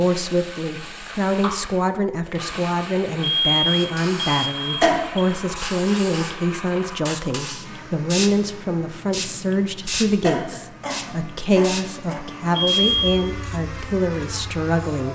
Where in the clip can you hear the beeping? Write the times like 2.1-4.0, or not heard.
3.2-5.2, 12.6-13.2.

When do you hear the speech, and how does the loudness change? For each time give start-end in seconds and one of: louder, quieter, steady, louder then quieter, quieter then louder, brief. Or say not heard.
0.0-15.1 steady.